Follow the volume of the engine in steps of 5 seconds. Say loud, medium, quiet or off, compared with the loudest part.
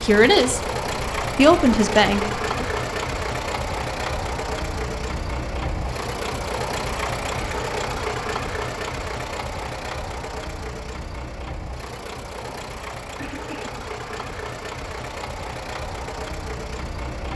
loud, loud, medium, medium.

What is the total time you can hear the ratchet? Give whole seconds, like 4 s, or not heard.
not heard.